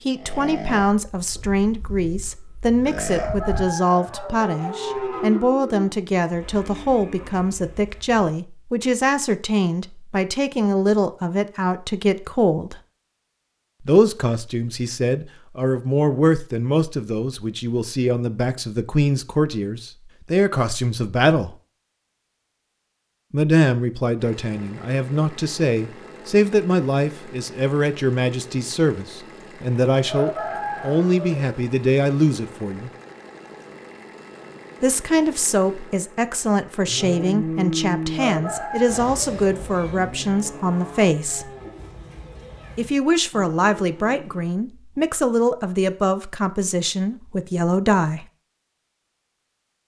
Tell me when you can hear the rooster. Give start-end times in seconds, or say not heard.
3.0-4.5, 30.1-31.6, 38.1-39.4.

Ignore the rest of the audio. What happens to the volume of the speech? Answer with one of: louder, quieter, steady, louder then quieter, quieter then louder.
steady.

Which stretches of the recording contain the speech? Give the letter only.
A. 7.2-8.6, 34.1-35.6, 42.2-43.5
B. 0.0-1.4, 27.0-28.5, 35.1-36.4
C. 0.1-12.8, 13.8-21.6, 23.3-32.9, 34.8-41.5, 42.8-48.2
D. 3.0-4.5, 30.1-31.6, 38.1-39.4
C.